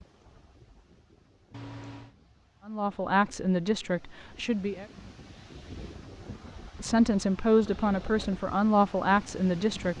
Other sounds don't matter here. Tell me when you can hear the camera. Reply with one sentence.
You can hear the camera from 1.5 to 2.1 s.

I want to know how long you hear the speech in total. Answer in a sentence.
The speech can be heard for 5 seconds in total.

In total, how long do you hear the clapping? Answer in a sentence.
The clapping can't be heard in this clip.